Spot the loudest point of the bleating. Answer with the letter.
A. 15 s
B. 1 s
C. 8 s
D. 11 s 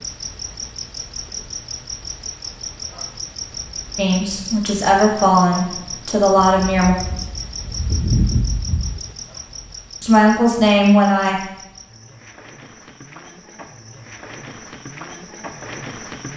C.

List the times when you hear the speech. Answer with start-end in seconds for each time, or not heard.
4.0-7.0, 10.0-11.4.